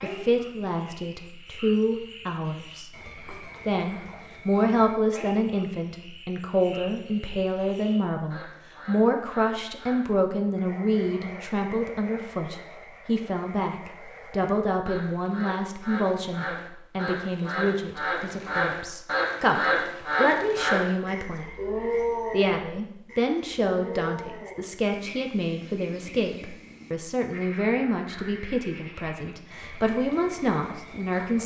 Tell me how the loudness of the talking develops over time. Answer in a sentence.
The loudness of the talking stays about the same.